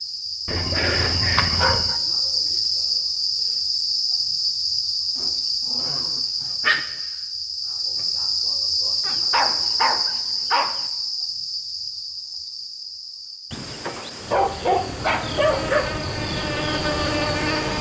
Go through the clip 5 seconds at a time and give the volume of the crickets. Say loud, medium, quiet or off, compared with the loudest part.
loud, loud, medium, loud.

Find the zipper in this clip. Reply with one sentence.
You can't hear the zipper here.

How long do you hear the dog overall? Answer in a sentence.
You can hear the dog for 7 seconds altogether.